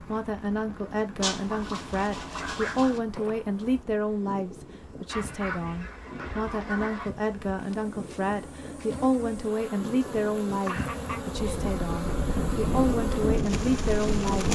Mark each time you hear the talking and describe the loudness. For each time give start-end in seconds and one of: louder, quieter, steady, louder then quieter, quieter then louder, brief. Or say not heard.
0.0-14.4 steady.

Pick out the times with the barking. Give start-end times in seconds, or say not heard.
not heard.